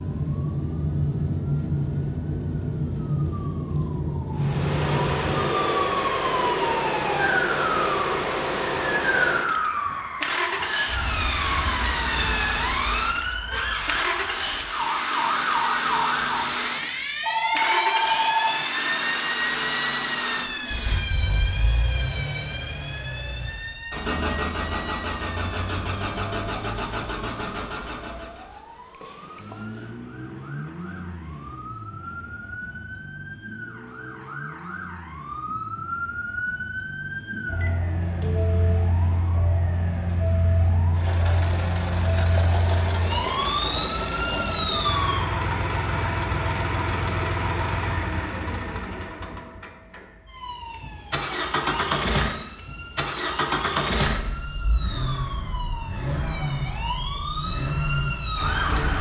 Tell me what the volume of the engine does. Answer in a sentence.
The loudness of the engine goes down, then up.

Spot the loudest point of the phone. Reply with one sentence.
The loudest moment of the phone is at 18 seconds.